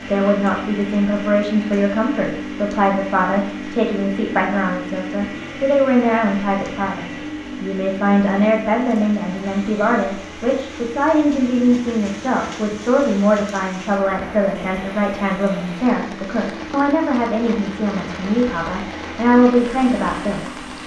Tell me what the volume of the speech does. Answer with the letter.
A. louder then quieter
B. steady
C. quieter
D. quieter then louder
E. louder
B.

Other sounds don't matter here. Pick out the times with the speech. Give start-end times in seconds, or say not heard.
0.1-20.6.